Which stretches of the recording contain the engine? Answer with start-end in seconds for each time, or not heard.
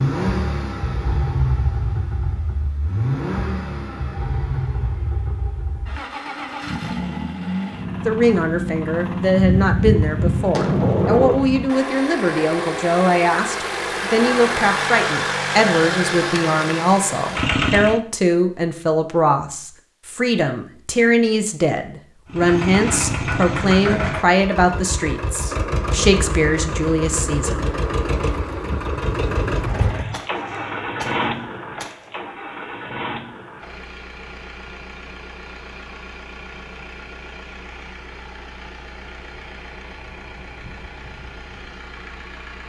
0.0-18.0, 22.2-42.6.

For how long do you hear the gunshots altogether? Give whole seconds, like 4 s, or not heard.
5 s.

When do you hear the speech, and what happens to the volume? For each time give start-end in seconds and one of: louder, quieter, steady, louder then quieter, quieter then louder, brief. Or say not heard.
8.1-27.6 steady.